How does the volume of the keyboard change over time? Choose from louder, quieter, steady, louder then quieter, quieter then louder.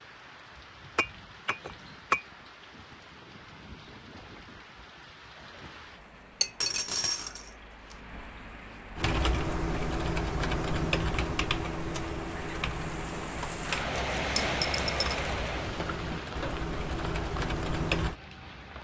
quieter then louder.